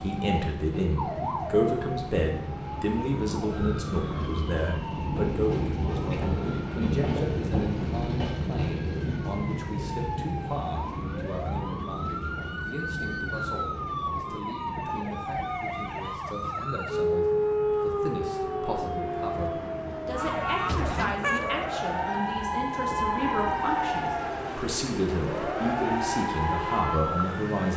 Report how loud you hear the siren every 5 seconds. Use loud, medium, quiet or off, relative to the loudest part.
medium, quiet, medium, loud, loud, loud.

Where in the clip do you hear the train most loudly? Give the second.
7 s.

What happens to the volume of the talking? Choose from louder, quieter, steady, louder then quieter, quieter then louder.
quieter then louder.